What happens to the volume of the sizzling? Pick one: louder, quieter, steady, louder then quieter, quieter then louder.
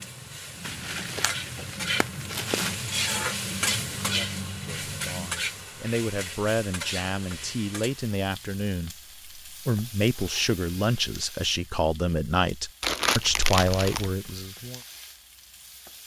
quieter.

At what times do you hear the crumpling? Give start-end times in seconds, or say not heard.
0.7-2.8, 12.8-14.1.